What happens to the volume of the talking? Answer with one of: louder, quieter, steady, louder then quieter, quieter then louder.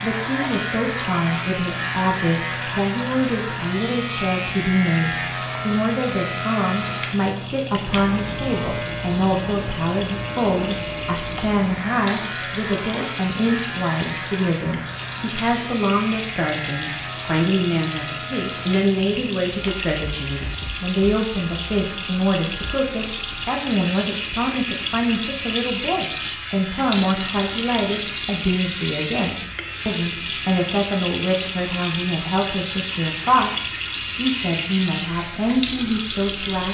steady.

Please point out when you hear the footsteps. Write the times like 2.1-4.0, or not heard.
not heard.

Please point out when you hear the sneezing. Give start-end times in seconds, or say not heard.
not heard.